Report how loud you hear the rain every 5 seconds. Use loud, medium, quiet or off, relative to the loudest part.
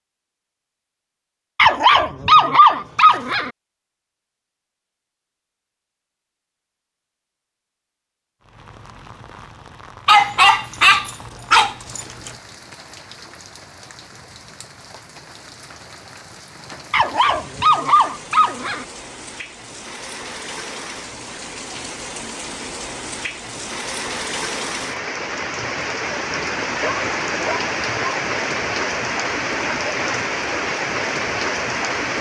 off, quiet, quiet, quiet, medium, loud, loud.